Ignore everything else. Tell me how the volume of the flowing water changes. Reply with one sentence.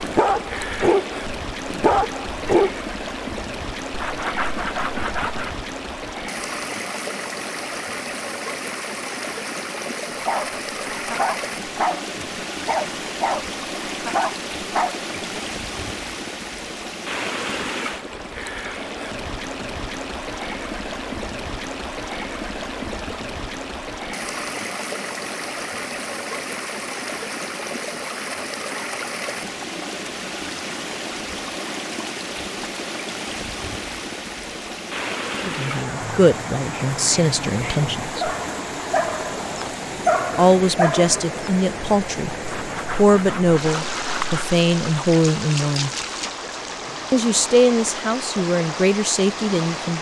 The volume of the flowing water stays about the same.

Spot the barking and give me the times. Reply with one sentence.
You can hear the barking from 0.0 to 2.8 s, from 10.2 to 15.4 s and from 36.0 to 41.5 s.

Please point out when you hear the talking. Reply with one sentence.
You can hear the talking from 35.4 to 38.3 s, from 40.4 to 45.9 s and from 47.1 to 49.9 s.